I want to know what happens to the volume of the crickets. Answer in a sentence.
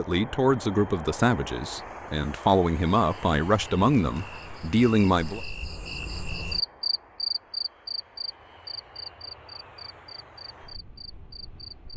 The volume of the crickets goes up, then down.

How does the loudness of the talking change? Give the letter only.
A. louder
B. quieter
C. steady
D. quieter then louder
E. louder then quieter
D.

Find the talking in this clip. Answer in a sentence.
The talking can be heard from 0.0 to 5.4 s.